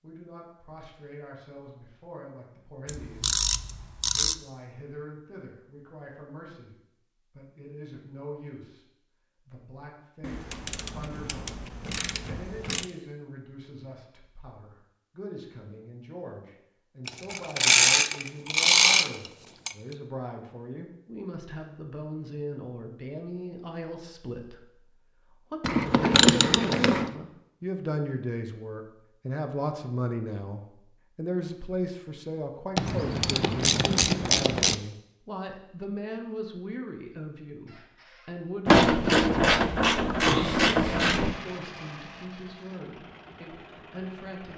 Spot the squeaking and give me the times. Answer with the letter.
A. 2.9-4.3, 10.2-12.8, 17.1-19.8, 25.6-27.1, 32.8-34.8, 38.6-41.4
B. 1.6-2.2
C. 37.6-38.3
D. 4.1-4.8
C.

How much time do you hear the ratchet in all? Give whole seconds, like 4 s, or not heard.
13 s.